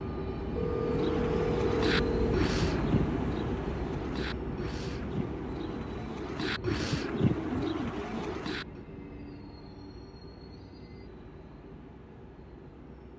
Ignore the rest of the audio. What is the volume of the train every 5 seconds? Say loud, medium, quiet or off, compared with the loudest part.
loud, medium, quiet.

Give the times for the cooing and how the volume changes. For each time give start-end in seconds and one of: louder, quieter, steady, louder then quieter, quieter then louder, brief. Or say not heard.
0.6-8.8 quieter then louder.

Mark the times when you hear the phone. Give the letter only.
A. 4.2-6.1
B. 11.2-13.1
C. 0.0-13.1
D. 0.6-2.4
D.